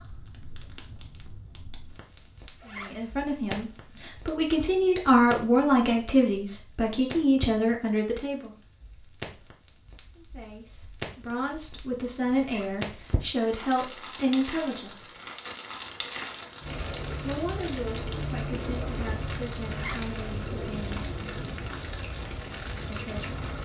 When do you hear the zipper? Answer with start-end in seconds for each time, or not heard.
2.6-3.0, 12.4-12.8, 19.7-20.1.